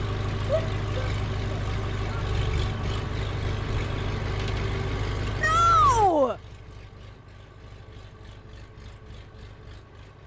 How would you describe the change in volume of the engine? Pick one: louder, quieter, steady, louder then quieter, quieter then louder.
quieter.